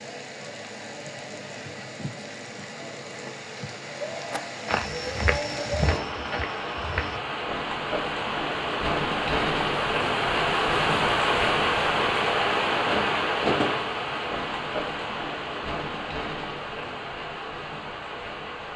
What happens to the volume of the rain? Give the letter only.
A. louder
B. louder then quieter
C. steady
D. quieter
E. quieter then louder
B.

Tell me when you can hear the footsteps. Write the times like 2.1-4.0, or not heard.
4.3-7.2.